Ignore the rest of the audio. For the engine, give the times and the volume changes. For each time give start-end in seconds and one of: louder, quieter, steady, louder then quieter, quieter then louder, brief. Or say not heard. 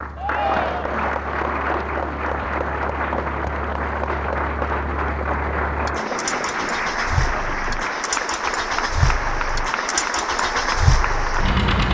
0.0-11.9 louder.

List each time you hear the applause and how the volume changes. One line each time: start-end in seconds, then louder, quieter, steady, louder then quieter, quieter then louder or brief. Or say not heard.
0.0-11.9 steady.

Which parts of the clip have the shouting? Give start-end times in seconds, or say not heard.
0.1-1.1.